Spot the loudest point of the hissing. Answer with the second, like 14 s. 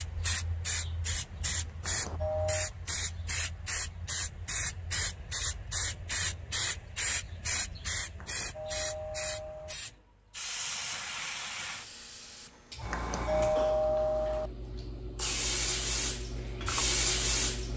17 s.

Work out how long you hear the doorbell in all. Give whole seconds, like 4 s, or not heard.
4 s.